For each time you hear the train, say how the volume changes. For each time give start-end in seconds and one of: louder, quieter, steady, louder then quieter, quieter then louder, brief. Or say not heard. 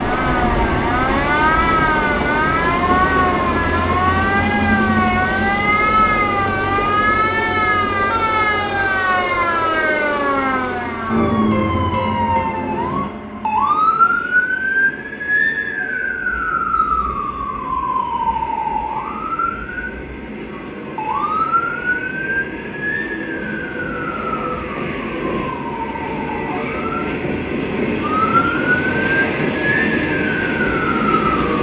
0.0-31.5 quieter then louder.